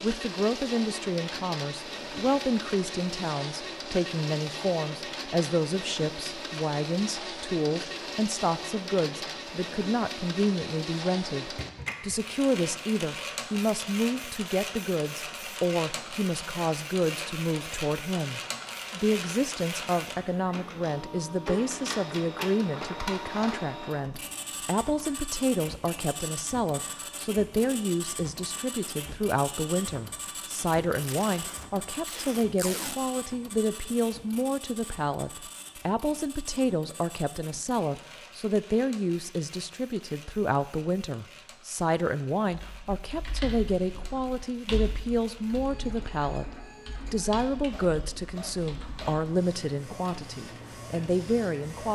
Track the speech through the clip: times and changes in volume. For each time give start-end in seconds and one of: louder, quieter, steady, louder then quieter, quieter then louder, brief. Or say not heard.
0.0-51.9 steady.